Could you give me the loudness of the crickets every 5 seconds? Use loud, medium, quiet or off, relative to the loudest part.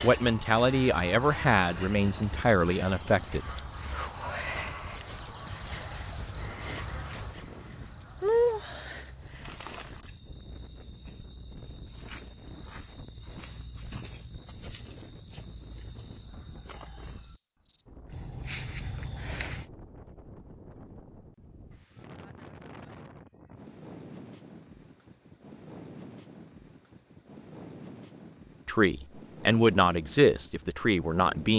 loud, loud, loud, loud, off, off, off.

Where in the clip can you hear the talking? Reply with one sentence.
You can hear the talking from 0.0 to 3.5 s and from 28.6 to 31.5 s.